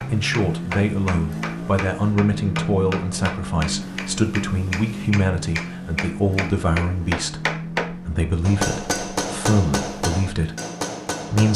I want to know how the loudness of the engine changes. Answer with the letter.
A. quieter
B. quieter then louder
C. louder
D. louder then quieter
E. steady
A.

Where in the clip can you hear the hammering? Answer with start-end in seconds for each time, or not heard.
0.0-11.5.